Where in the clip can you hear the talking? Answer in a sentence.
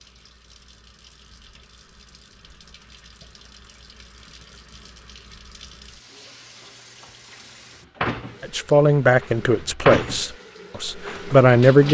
You can hear the talking from 8.4 to 11.8 s.